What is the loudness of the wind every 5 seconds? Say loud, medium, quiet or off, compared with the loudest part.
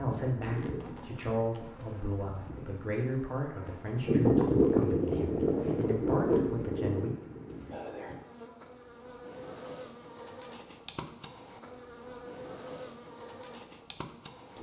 loud, loud, off.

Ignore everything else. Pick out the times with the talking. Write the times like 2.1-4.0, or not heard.
0.0-7.2.